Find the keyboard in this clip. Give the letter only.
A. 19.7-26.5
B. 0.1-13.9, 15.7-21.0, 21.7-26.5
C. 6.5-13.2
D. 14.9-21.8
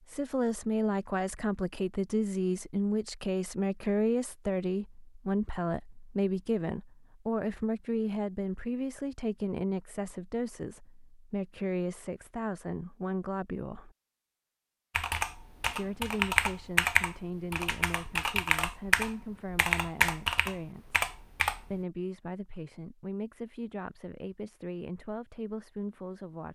D.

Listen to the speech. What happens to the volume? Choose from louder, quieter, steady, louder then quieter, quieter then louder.
quieter.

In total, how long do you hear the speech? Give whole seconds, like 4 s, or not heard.
24 s.